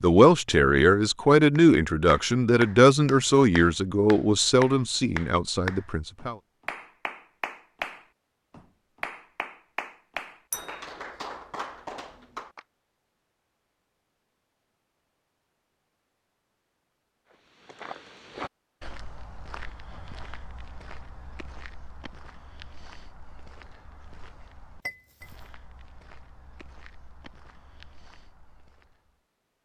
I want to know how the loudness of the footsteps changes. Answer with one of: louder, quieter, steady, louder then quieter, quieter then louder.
quieter.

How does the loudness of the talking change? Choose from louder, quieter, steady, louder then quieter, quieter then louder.
quieter.